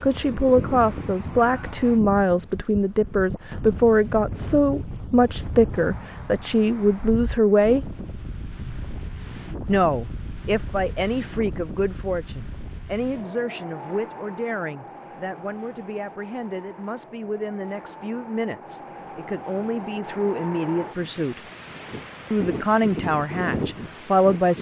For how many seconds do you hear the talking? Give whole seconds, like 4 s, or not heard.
22 s.